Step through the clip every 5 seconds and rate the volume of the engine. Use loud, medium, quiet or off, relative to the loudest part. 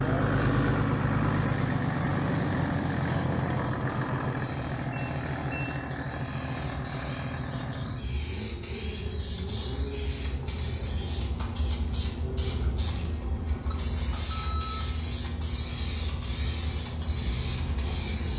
loud, medium, quiet, quiet.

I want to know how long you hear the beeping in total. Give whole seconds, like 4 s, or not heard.
2 s.